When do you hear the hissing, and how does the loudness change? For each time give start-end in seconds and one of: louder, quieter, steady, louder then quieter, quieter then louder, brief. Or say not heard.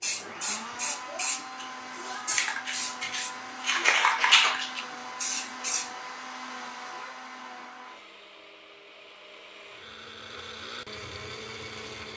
0.0-5.9 louder then quieter.